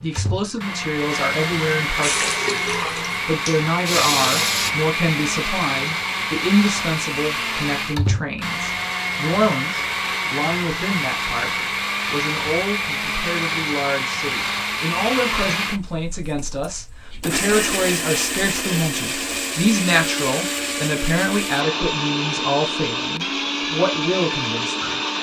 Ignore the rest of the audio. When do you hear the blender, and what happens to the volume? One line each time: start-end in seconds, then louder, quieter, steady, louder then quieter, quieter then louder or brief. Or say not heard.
0.0-25.1 steady.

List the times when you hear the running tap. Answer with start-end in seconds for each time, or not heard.
2.0-4.7.